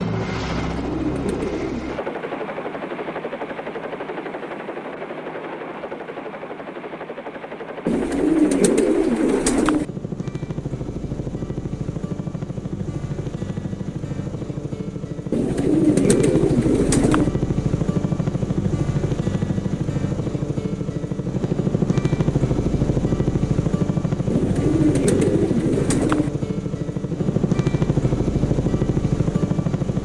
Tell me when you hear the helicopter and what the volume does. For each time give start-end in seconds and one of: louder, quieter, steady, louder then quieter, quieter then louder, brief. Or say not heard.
0.0-29.9 louder.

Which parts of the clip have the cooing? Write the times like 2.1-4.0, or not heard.
0.5-2.0, 7.8-9.8, 15.3-17.3, 24.3-26.3.